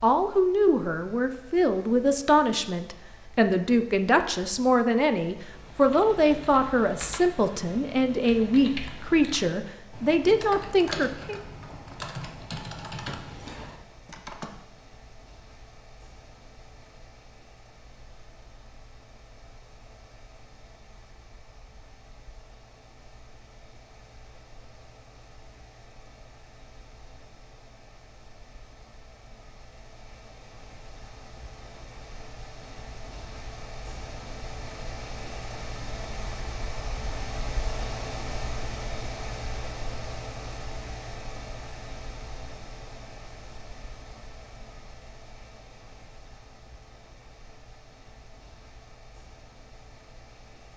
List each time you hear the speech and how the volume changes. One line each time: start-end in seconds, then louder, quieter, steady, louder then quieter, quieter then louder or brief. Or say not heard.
0.0-11.4 steady.